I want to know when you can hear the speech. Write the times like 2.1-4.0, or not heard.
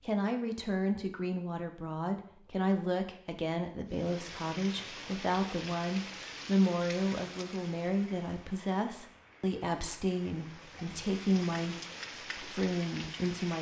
0.1-11.8, 12.3-13.5.